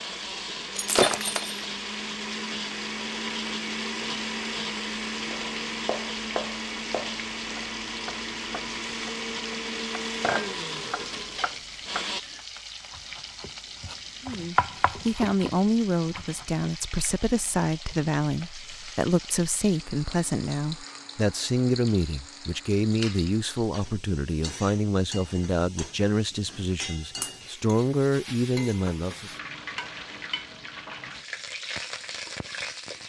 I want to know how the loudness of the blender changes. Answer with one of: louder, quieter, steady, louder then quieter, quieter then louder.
steady.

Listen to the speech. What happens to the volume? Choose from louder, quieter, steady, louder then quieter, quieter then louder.
steady.